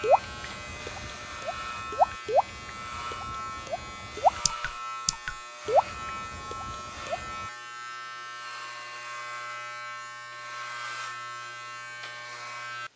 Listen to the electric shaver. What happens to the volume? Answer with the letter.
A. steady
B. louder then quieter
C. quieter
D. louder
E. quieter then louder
A.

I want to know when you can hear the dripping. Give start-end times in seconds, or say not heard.
0.0-7.5.